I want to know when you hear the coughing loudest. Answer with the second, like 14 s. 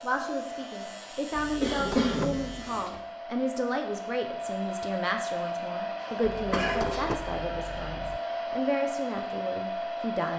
2 s.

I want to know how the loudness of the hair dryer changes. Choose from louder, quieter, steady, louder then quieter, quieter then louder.
louder.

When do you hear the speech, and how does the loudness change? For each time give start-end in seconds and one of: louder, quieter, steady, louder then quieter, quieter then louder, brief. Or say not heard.
0.0-10.3 steady.